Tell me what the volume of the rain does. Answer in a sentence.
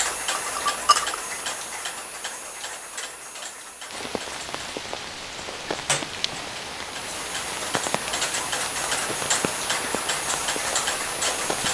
The loudness of the rain stays about the same.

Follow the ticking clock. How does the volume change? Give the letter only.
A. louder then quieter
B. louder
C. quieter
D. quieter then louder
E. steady
D.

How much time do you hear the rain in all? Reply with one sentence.
The rain can be heard for 8 seconds in total.